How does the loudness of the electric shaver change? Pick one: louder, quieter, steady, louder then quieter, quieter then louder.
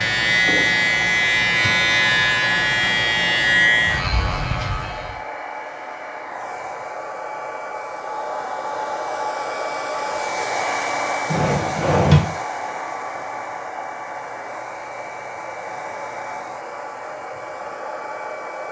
quieter.